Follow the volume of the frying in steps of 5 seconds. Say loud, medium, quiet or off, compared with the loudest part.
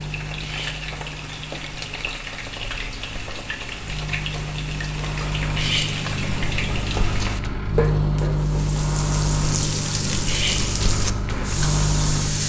medium, loud, loud.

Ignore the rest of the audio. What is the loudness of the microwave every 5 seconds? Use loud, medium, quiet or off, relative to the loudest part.
medium, loud, loud.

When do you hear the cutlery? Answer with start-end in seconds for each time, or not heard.
0.4-0.8, 5.5-6.0, 10.2-10.7.